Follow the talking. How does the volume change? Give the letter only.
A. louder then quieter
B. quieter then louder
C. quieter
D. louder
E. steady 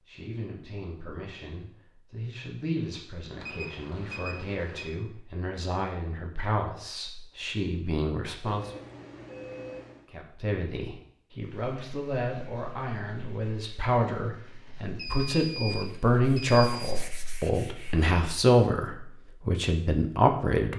D.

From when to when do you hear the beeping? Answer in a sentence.
You can hear the beeping from 3.4 to 4.9 s, from 8.4 to 10.1 s and from 14.8 to 16.9 s.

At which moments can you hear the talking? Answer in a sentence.
The talking can be heard from 0.1 to 8.7 s and from 10.1 to 20.7 s.